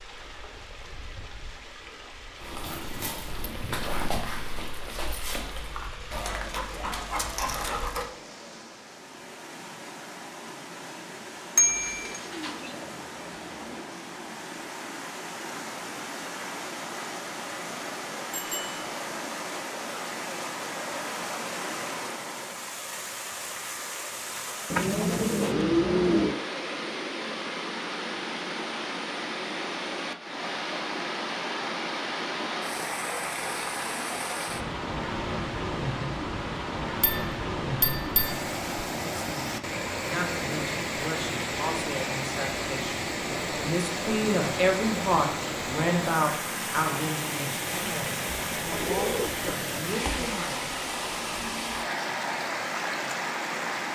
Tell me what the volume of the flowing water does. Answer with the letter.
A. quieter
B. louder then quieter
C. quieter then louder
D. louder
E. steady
D.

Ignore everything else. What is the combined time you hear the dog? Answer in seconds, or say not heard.
6 s.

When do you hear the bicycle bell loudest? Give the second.
12 s.